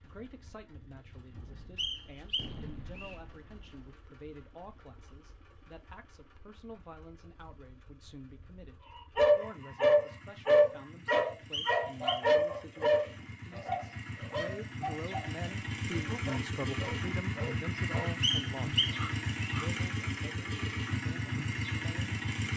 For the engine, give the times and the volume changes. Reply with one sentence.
You can hear the engine from 0.0 to 22.5 s, getting louder.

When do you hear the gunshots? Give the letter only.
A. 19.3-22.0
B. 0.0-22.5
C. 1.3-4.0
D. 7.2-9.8
C.